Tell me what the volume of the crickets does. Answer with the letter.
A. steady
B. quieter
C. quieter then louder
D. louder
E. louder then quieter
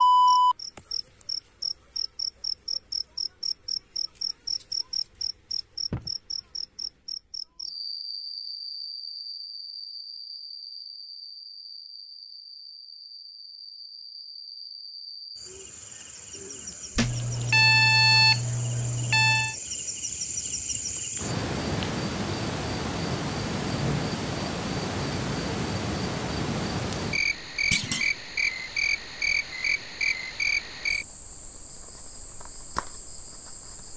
C.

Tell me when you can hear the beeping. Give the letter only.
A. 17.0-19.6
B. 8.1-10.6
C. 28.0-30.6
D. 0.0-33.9
A.